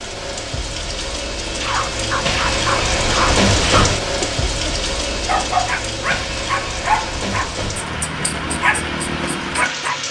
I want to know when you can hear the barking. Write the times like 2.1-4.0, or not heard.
1.5-9.9.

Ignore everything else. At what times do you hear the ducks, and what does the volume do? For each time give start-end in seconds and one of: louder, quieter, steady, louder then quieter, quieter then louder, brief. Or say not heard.
not heard.